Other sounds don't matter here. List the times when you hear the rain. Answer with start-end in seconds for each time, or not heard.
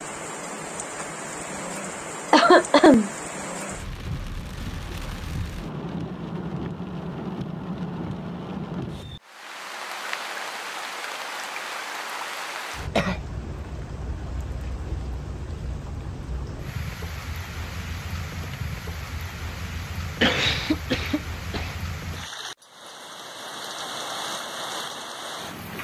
0.0-25.7.